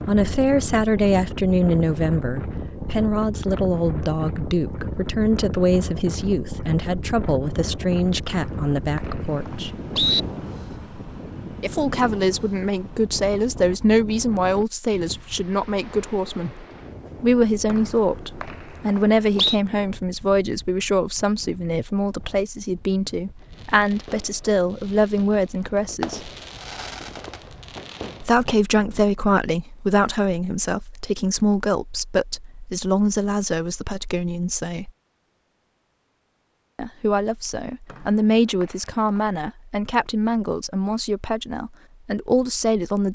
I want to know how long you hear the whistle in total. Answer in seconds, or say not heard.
5 s.